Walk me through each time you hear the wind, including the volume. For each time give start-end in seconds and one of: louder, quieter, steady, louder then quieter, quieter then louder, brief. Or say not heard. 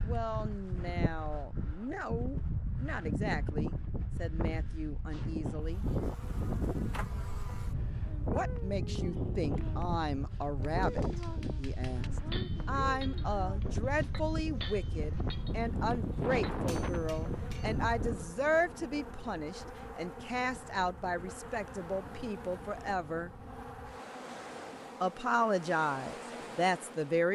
0.0-27.2 quieter.